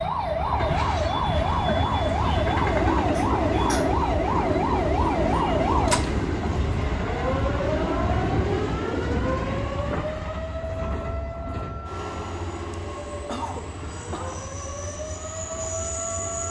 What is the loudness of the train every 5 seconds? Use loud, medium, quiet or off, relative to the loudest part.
loud, loud, medium, medium.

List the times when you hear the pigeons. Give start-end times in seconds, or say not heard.
not heard.